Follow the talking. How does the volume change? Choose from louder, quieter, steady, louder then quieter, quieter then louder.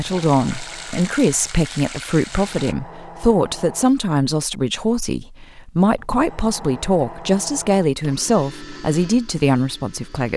steady.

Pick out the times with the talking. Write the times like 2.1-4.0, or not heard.
0.0-10.3.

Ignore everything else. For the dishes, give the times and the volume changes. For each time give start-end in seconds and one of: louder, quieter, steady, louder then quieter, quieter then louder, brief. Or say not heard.
not heard.